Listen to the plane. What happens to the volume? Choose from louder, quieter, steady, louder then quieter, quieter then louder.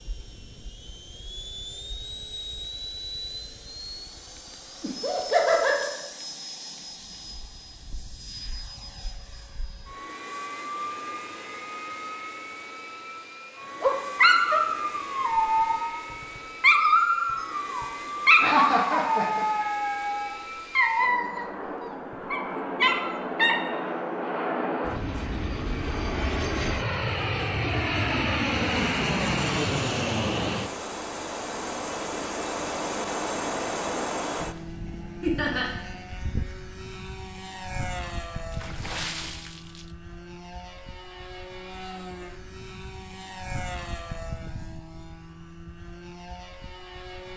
louder then quieter.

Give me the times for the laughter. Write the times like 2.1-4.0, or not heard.
4.8-5.9, 18.4-19.6, 35.2-35.6.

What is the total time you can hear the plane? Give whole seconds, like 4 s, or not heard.
47 s.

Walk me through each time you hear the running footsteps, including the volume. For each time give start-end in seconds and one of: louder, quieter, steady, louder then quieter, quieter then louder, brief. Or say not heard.
not heard.